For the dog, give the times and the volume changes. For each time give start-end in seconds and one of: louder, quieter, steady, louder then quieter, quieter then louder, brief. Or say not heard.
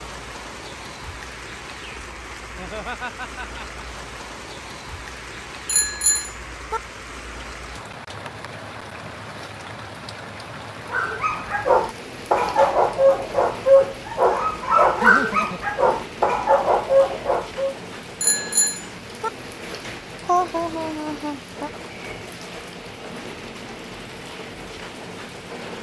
10.9-17.8 steady.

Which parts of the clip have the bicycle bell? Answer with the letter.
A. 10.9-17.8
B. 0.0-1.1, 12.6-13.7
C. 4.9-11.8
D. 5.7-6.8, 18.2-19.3
D.